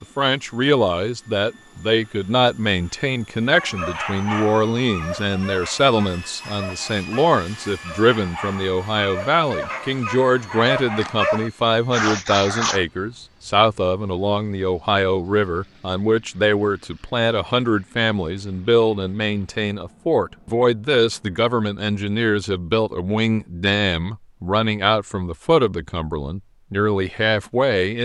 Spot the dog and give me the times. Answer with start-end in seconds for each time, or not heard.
3.5-12.8.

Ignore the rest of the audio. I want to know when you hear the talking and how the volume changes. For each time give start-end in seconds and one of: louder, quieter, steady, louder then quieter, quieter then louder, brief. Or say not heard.
0.0-28.0 steady.